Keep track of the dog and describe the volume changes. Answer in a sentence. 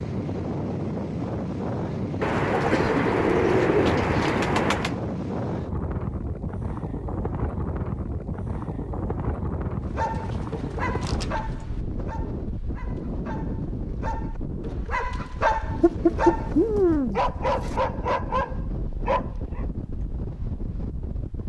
The volume of the dog goes down, then up.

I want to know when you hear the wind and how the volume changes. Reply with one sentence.
The wind can be heard from 0.0 to 21.4 s, getting quieter.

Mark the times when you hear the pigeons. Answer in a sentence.
The pigeons can be heard from 2.2 to 5.0 s, from 9.8 to 11.8 s and from 15.8 to 17.8 s.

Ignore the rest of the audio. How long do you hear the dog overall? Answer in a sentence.
The dog can be heard for 10 seconds in total.